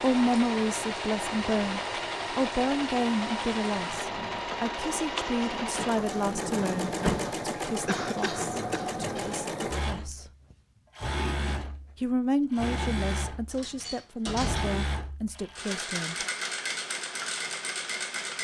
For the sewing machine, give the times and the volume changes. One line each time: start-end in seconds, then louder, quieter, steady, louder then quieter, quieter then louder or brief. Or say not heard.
0.0-18.3 steady.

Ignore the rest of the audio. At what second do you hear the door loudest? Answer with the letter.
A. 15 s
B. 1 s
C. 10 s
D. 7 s
D.